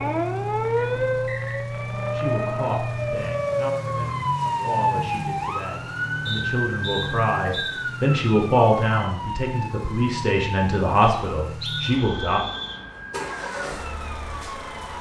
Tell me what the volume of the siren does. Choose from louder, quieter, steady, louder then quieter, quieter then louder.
quieter.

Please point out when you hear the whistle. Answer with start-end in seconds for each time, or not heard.
0.8-1.7, 6.2-7.8, 11.0-12.8.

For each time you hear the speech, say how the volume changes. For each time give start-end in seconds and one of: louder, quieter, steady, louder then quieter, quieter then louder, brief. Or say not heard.
2.1-12.4 louder.